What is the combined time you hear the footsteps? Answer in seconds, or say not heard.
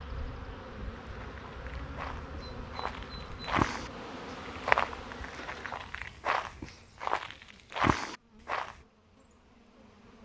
8 s.